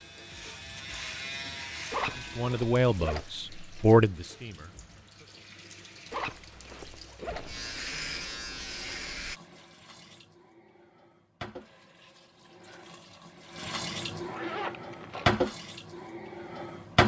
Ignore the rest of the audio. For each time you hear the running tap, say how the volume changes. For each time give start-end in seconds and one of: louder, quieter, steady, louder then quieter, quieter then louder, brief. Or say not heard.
0.0-17.0 louder.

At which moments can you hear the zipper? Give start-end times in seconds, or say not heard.
1.9-3.2, 6.1-7.5, 14.2-15.4.